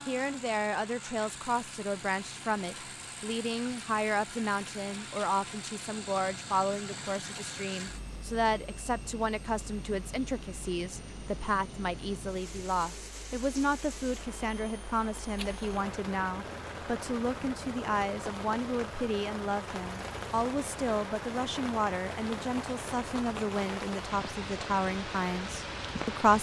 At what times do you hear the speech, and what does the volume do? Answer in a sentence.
The speech can be heard from 0.1 to 26.3 s, at a steady volume.